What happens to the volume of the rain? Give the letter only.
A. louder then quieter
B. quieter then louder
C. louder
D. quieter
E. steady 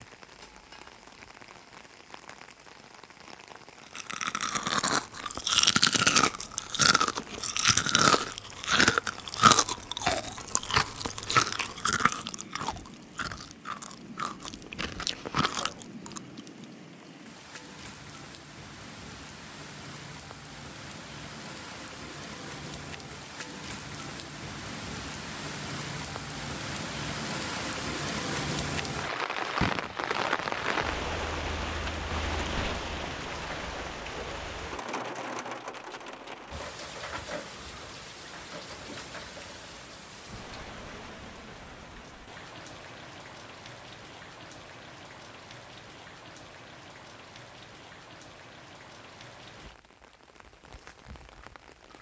A.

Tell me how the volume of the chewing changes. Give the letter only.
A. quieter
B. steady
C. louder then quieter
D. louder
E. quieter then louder
A.